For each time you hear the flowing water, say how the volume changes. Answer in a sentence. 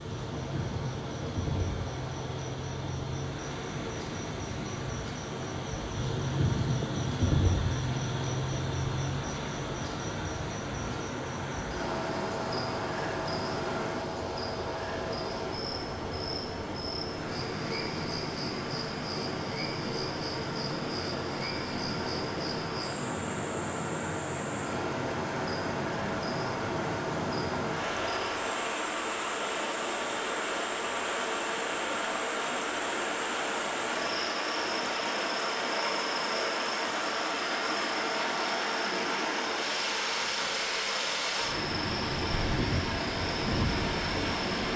You can hear the flowing water from 0.0 to 44.7 s, getting louder.